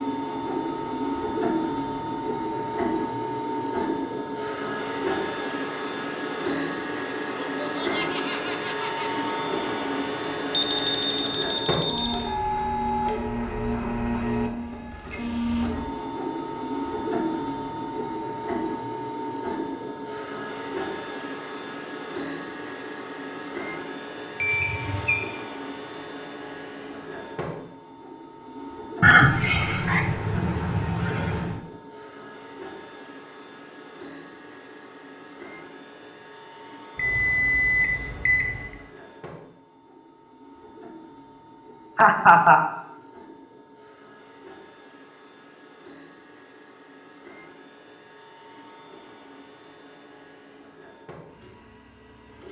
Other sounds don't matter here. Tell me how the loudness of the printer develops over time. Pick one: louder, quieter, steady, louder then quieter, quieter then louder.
quieter.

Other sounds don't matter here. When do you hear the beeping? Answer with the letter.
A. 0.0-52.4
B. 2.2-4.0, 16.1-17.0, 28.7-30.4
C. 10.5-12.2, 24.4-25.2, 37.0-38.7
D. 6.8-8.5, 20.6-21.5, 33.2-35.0
C.